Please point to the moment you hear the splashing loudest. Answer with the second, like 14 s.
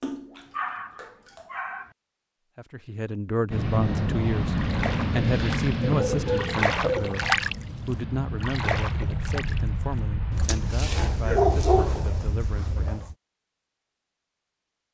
7 s.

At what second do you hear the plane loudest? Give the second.
5 s.